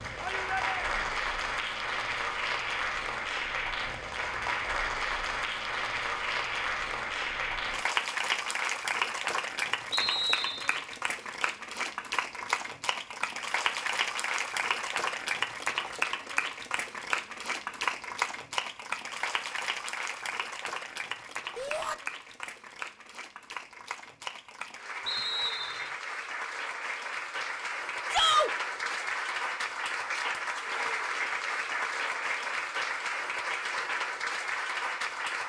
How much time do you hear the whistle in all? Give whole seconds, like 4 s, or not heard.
2 s.